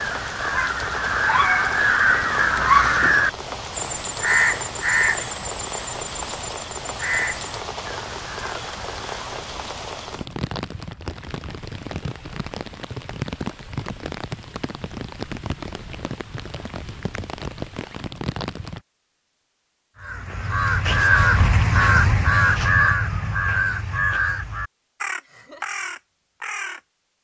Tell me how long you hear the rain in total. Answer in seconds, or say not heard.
19 s.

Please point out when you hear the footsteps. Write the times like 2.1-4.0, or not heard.
not heard.